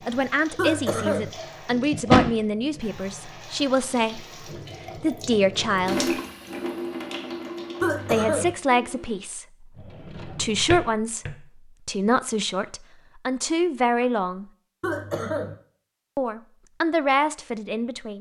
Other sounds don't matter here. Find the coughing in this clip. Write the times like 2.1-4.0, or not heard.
0.6-1.3, 7.8-8.6, 14.8-15.6.